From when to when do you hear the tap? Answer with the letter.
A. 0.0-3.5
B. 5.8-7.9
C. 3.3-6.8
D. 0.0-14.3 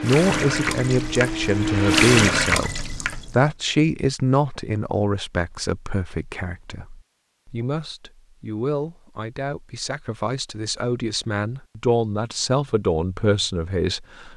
A.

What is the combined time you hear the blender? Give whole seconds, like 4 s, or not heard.
2 s.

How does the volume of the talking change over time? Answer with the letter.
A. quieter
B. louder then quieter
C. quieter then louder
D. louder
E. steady
C.